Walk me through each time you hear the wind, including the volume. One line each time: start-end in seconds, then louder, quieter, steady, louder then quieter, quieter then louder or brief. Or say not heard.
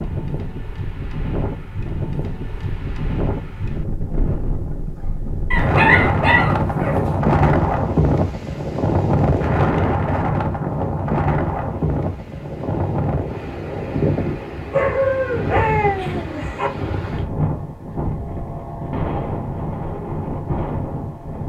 0.0-21.4 louder then quieter.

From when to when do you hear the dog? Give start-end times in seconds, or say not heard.
5.5-7.1, 14.7-16.7.